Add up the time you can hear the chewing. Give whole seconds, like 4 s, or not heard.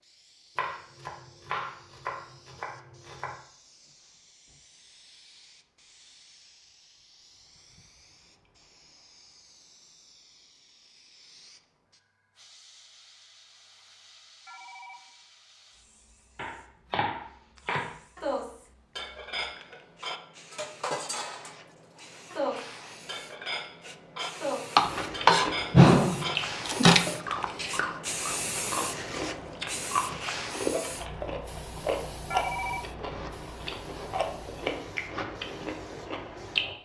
12 s.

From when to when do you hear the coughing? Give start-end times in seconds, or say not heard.
not heard.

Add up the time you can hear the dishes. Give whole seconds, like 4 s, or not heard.
10 s.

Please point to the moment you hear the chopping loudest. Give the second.
26 s.